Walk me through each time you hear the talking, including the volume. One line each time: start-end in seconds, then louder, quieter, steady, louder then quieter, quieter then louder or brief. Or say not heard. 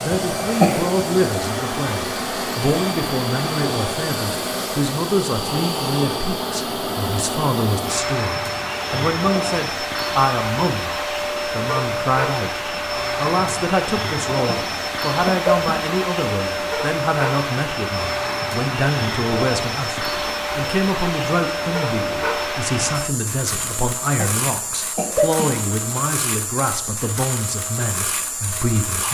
0.0-29.0 steady.